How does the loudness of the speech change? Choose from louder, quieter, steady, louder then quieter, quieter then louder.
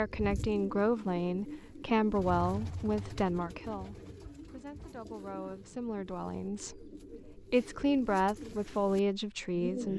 quieter then louder.